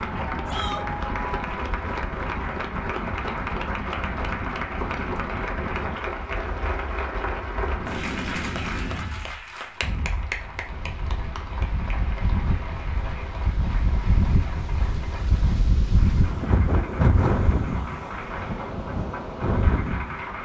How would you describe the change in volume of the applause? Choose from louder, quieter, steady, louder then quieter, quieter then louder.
quieter.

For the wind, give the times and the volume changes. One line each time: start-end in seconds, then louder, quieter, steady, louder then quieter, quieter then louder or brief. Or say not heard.
0.0-20.4 louder.